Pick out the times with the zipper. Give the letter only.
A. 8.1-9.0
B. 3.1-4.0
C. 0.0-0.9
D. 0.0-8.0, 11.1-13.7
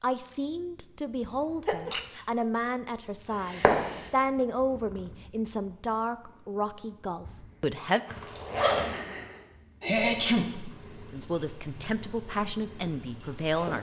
A.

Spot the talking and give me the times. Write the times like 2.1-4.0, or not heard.
0.0-8.0, 11.1-13.7.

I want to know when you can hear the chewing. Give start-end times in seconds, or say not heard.
not heard.